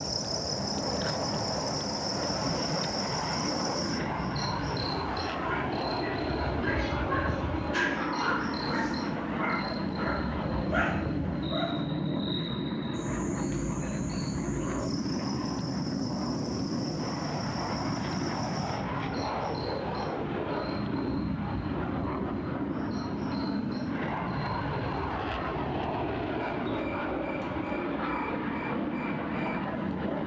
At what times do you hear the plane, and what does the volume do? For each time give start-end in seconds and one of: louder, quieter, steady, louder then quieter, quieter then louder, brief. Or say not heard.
0.0-30.2 steady.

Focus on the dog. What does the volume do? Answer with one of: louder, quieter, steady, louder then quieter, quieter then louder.
louder.